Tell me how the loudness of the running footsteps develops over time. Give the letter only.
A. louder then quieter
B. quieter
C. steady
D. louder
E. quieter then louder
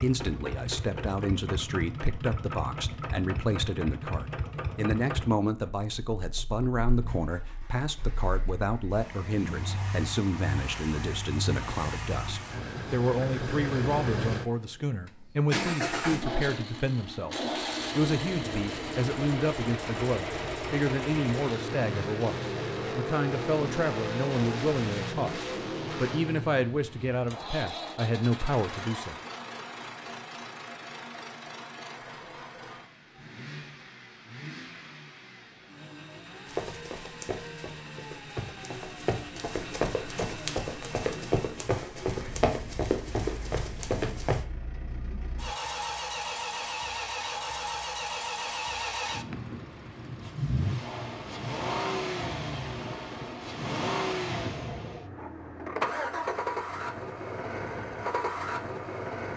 D.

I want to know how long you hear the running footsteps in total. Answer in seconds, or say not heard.
8 s.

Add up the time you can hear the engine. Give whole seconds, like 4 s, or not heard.
59 s.